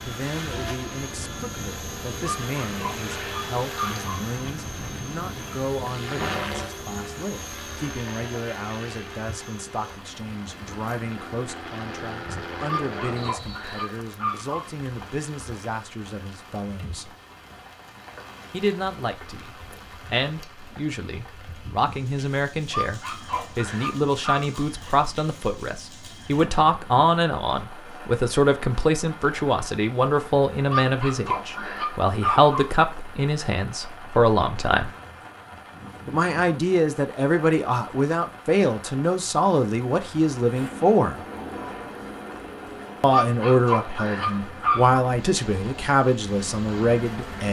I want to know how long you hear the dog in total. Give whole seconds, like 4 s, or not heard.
10 s.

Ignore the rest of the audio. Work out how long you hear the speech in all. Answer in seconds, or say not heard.
43 s.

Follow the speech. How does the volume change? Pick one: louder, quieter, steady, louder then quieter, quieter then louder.
louder.